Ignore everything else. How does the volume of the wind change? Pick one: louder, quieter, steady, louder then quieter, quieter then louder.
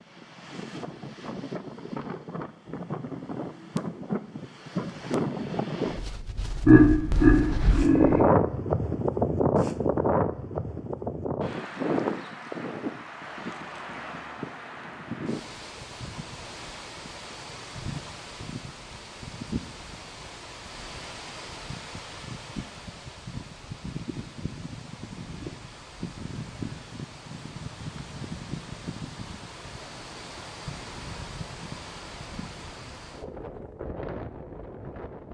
louder then quieter.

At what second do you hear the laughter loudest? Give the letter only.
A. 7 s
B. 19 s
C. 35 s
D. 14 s
A.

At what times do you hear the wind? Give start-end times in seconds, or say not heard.
0.0-35.2.